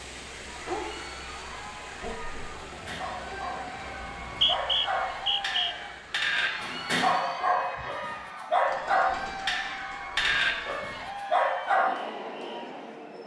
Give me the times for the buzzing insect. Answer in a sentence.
The buzzing insect can't be heard in this clip.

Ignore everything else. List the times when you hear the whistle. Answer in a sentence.
You can hear the whistle from 4.0 to 5.6 s.